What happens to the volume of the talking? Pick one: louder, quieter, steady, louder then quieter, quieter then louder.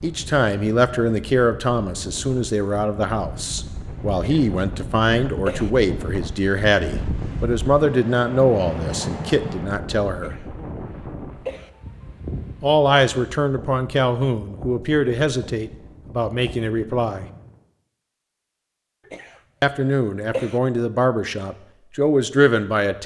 steady.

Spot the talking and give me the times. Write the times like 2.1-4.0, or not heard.
0.0-10.3, 12.6-17.2, 19.6-23.0.